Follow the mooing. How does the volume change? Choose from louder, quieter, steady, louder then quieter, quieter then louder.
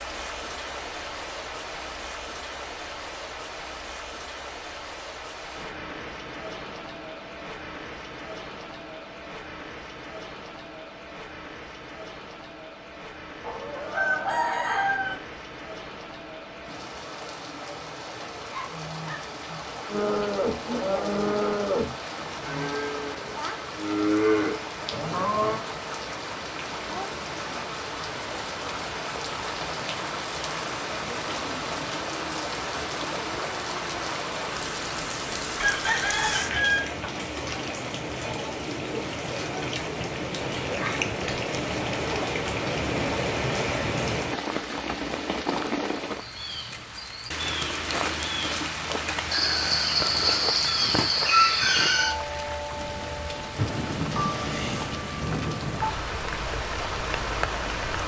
quieter then louder.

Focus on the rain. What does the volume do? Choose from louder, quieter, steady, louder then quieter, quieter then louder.
louder.